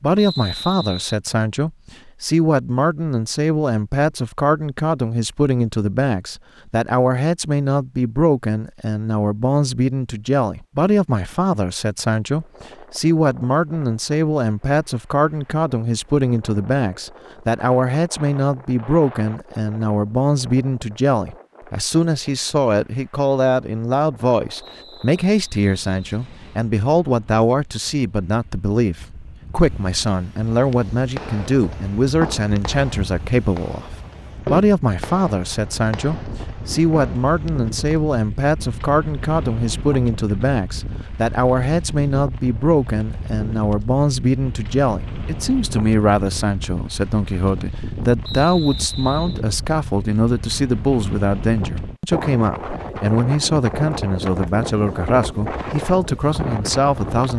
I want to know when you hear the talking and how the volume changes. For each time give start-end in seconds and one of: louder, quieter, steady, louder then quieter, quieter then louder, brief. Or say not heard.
0.0-57.3 steady.